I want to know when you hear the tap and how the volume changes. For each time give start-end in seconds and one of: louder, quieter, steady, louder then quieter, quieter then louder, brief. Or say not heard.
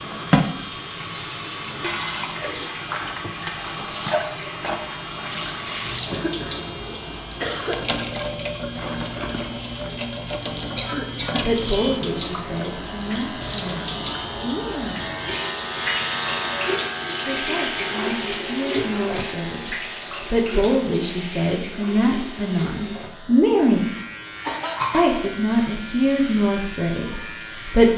0.0-27.9 quieter.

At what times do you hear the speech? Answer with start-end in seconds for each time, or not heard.
11.4-15.1, 17.2-23.9, 24.9-27.9.